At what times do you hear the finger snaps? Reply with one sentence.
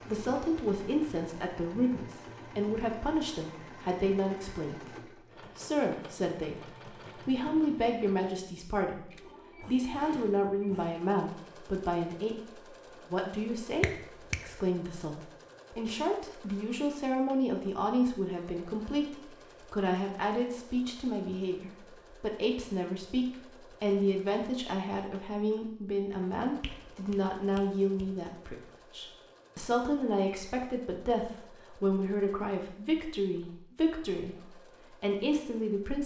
The finger snaps can be heard from 13.8 to 14.4 s and from 26.6 to 28.1 s.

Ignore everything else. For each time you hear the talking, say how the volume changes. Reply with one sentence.
You can hear the talking from 0.1 to 36.0 s, at a steady volume.